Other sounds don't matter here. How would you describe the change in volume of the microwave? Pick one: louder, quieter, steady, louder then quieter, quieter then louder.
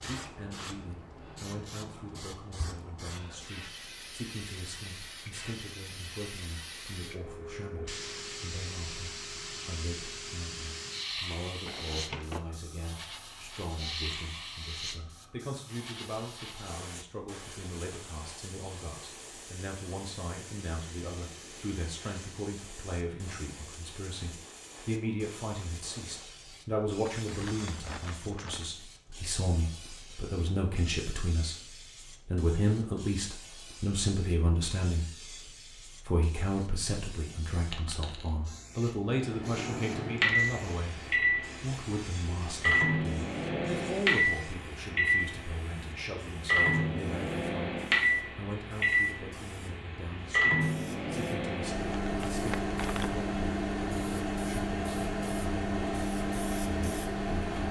steady.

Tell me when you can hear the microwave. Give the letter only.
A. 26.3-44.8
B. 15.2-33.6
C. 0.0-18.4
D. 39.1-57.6
D.